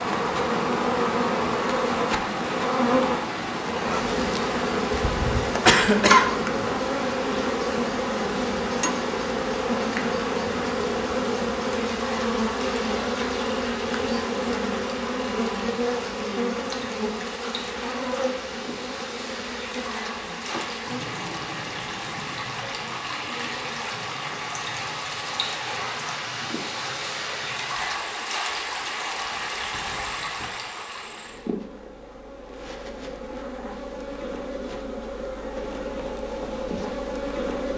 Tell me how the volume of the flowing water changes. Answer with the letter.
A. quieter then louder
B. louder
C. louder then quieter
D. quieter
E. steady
A.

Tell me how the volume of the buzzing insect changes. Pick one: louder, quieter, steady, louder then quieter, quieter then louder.
quieter then louder.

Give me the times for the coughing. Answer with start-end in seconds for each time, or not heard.
5.0-6.7.